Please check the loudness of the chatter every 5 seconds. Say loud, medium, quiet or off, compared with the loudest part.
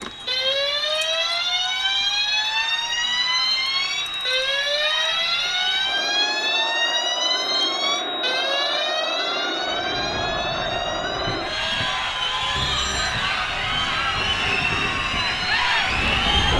quiet, medium, loud, loud.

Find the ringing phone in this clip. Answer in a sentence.
You can hear the ringing phone from 12.6 to 13.2 s.